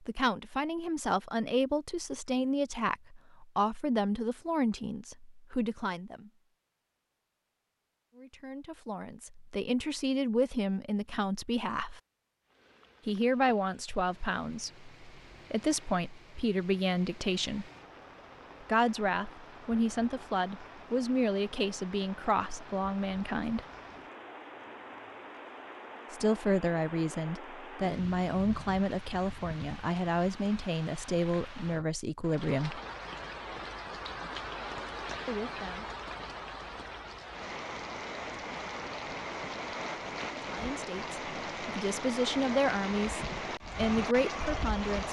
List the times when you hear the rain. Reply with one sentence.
You can hear the rain from 12.4 to 45.0 s.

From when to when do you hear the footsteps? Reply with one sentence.
You can't hear the footsteps here.